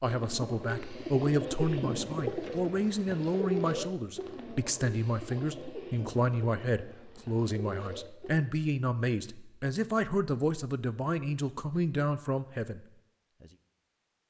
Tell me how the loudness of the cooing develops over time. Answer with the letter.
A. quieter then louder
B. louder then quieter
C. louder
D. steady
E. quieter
E.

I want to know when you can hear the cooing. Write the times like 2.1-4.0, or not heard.
0.0-8.4.